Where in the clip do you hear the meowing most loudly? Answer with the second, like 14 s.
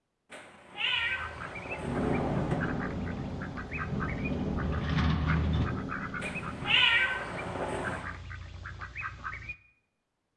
7 s.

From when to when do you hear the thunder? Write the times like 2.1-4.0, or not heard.
1.8-6.8.